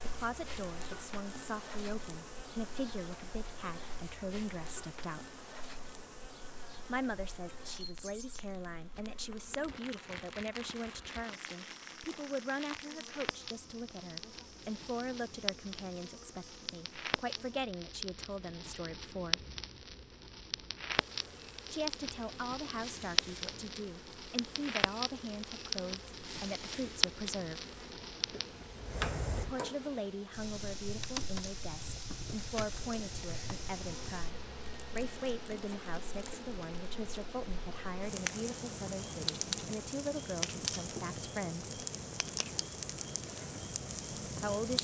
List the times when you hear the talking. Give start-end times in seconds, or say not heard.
0.0-5.3, 6.8-19.4, 21.7-27.6, 29.4-41.8, 44.2-44.7.